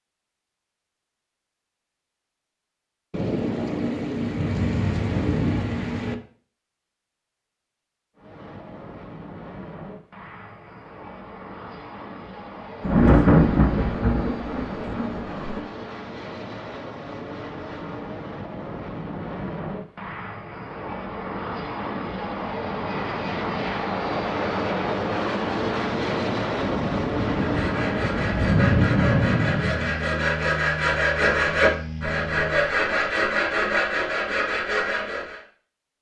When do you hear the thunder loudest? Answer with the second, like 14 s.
13 s.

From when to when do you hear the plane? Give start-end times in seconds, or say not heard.
8.2-32.8.